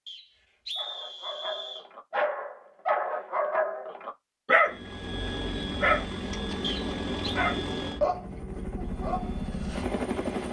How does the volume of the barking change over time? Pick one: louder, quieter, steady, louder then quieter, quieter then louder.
louder then quieter.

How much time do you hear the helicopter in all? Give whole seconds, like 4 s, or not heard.
6 s.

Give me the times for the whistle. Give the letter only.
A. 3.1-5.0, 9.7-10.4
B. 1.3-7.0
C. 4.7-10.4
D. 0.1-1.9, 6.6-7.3
D.